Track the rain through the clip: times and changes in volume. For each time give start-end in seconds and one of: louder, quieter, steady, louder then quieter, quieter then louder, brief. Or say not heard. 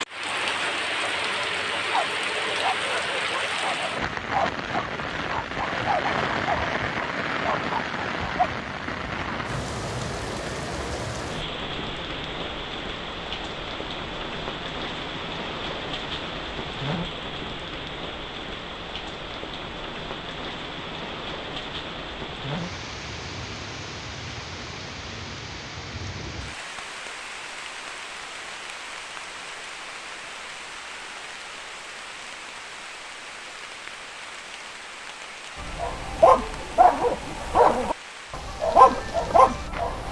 0.0-40.0 quieter.